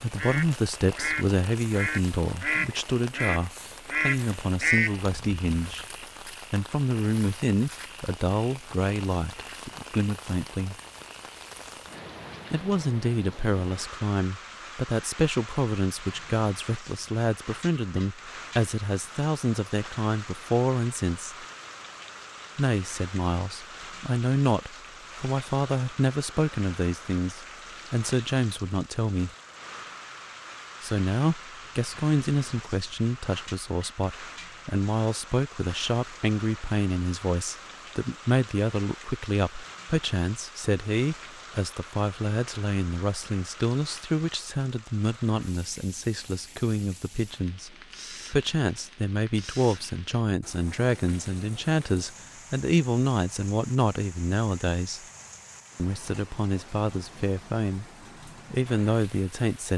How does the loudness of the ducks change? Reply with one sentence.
The volume of the ducks goes up.